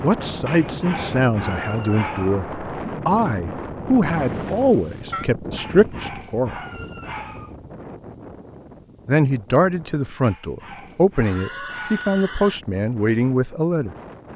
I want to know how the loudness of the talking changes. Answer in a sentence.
The loudness of the talking stays about the same.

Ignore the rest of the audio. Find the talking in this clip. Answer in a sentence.
The talking can be heard from 0.0 to 6.6 s and from 9.1 to 13.9 s.